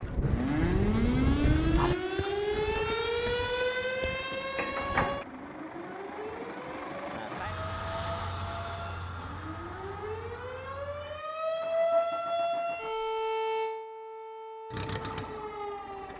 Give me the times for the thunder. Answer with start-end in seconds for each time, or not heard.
0.0-1.9.